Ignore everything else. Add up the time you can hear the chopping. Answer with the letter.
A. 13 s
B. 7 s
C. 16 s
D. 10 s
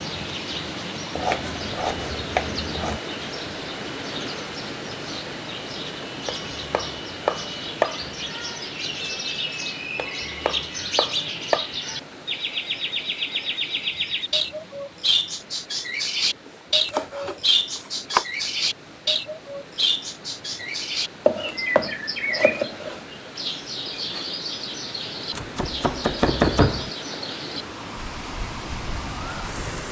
D.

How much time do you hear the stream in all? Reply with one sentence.
The stream can be heard for 30 seconds in total.